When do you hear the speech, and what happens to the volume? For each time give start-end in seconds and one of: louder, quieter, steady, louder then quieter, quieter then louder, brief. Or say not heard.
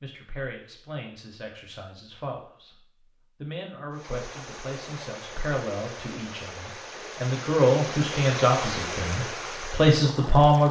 0.0-10.6 louder.